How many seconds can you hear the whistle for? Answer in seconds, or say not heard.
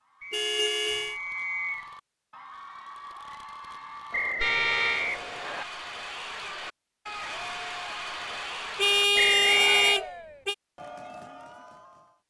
4 s.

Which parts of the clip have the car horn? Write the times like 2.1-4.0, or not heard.
0.3-1.1, 4.3-5.1, 8.8-10.6.